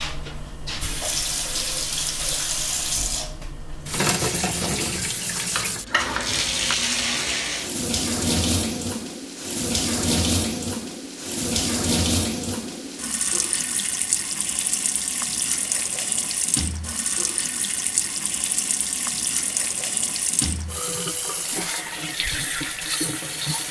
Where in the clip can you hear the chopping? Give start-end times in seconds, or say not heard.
5.5-6.8.